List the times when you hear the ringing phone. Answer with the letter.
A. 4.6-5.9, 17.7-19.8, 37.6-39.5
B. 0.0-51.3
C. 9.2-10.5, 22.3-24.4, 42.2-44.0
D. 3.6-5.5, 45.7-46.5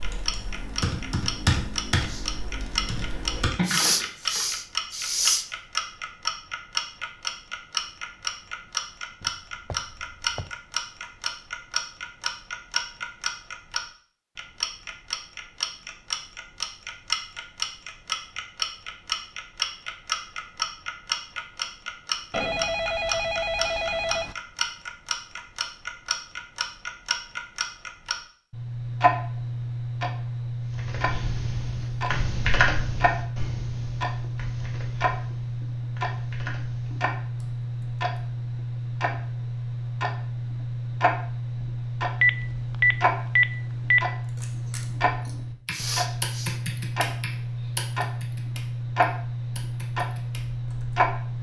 C.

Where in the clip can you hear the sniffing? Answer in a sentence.
You can hear the sniffing from 3.6 to 5.5 s and from 45.7 to 46.5 s.